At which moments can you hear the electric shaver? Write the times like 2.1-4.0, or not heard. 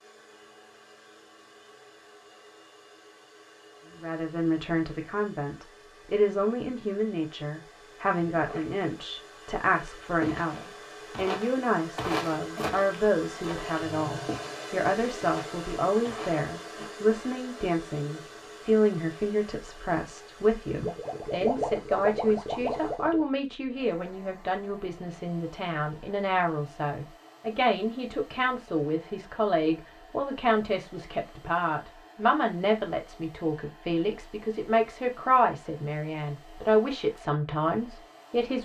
not heard.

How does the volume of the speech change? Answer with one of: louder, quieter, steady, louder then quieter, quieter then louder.
steady.